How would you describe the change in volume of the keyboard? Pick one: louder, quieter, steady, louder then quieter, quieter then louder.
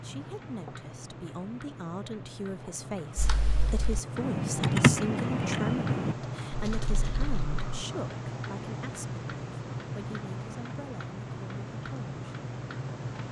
louder then quieter.